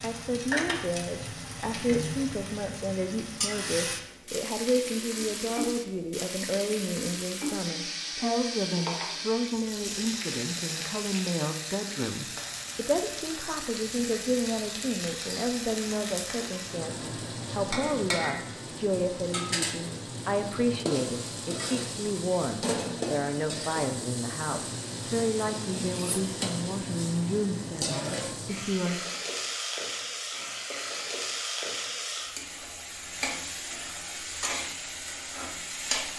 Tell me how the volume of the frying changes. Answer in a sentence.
The volume of the frying stays about the same.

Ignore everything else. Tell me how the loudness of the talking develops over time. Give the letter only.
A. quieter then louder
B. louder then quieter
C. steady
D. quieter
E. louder
C.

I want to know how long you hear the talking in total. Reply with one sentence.
You can hear the talking for 29 seconds altogether.